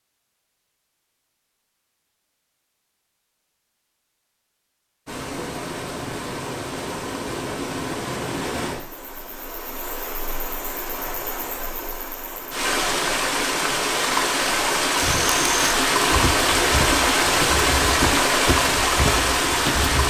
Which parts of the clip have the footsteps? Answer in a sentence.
The footsteps can be heard from 14.9 to 20.0 s.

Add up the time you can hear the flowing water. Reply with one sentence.
You can hear the flowing water for 15 seconds altogether.